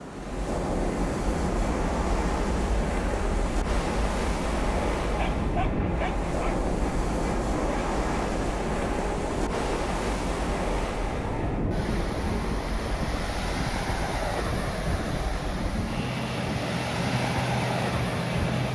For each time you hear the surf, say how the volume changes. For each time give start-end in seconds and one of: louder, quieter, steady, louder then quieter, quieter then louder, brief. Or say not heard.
0.0-18.7 steady.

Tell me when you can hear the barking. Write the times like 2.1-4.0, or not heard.
5.2-6.5.